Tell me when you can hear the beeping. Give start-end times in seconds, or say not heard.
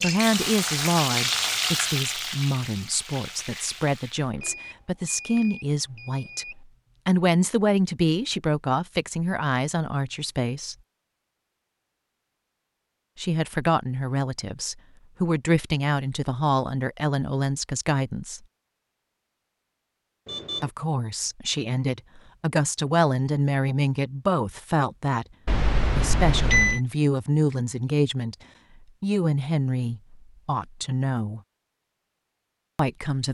4.3-6.5, 20.2-20.7, 25.4-26.8.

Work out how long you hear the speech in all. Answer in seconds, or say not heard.
26 s.